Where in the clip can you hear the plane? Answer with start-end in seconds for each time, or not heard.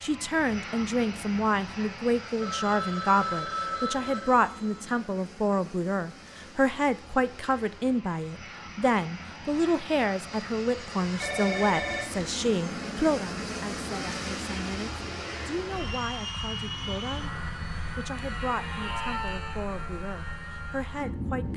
0.0-21.5.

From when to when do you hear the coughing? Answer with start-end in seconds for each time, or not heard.
not heard.